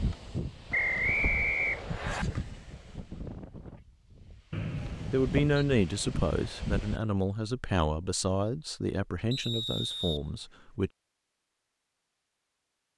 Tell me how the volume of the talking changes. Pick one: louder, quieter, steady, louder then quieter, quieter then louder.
quieter.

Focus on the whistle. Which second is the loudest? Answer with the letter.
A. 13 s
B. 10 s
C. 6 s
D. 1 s
D.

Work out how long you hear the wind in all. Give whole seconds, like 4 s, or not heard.
7 s.